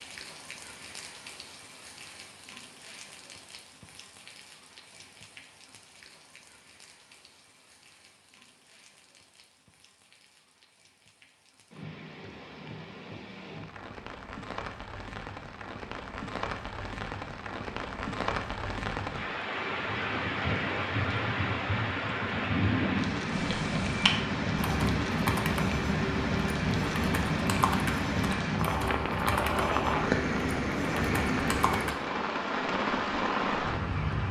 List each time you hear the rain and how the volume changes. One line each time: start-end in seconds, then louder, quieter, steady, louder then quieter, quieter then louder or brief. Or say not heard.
0.0-34.2 louder.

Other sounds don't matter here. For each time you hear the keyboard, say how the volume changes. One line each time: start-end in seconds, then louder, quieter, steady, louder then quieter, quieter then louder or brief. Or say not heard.
23.3-32.0 steady.